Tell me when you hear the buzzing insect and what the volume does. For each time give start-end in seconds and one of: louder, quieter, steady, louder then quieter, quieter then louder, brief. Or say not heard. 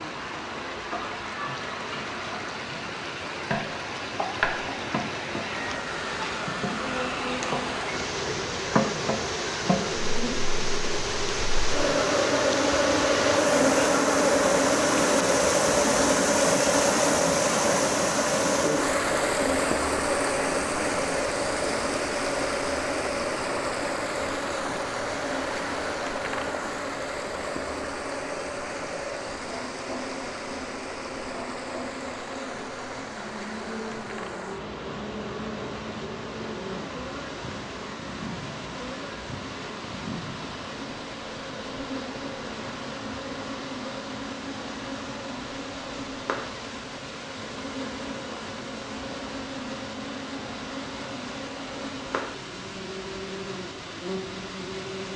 0.0-55.1 louder then quieter.